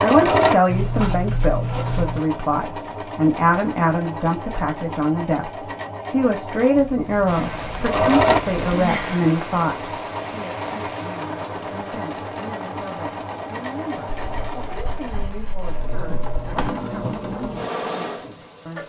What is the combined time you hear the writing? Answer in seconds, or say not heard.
7 s.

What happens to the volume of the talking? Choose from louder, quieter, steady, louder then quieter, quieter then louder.
quieter.